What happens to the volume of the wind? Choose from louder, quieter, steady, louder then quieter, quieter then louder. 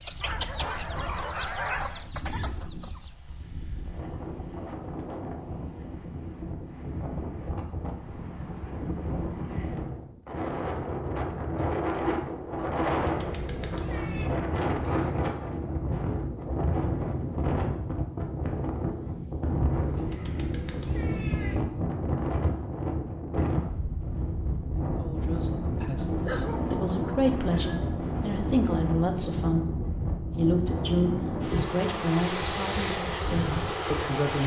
louder.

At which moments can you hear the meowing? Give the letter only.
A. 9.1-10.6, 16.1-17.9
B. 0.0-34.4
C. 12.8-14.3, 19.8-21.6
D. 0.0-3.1
C.